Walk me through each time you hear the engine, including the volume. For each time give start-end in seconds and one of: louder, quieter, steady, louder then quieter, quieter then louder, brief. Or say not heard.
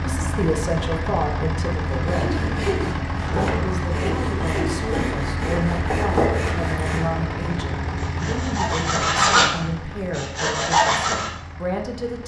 0.0-12.2 quieter.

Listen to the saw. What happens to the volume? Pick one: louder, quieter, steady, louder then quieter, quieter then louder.
louder.